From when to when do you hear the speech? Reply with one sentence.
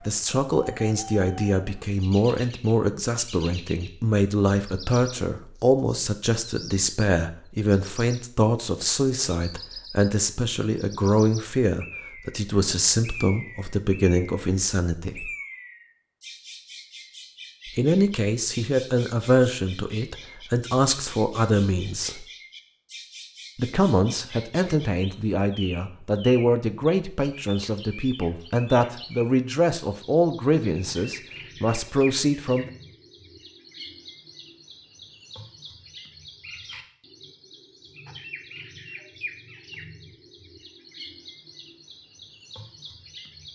You can hear the speech from 0.1 to 15.3 s, from 17.6 to 22.2 s and from 23.6 to 32.7 s.